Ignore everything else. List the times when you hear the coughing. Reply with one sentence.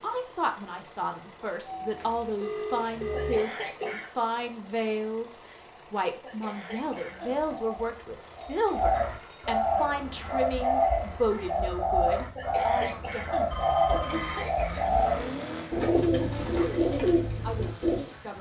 You can hear the coughing from 3.1 to 4.1 s, from 6.2 to 7.4 s and from 12.3 to 14.9 s.